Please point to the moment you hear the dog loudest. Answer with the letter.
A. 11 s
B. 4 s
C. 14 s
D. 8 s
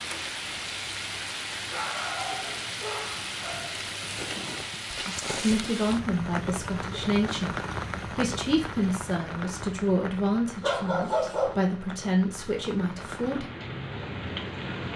A.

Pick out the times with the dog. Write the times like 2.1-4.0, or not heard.
1.6-3.7, 10.6-11.6.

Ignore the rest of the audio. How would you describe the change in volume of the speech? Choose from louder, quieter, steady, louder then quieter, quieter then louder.
steady.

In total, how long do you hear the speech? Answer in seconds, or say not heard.
8 s.